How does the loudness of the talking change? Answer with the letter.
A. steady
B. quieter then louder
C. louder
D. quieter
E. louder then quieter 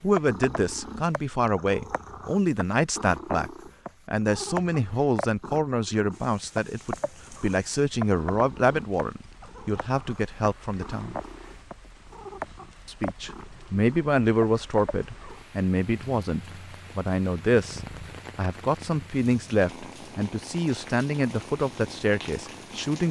A.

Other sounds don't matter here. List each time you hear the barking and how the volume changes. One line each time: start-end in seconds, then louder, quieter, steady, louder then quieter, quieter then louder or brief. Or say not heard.
not heard.